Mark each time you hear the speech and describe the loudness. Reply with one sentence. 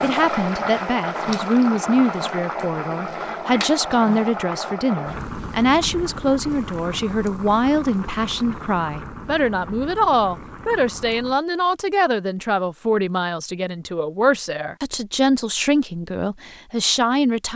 You can hear the speech from 0.0 to 17.5 s, at a steady volume.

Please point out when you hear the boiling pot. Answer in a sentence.
The boiling pot can be heard from 0.0 to 11.4 s.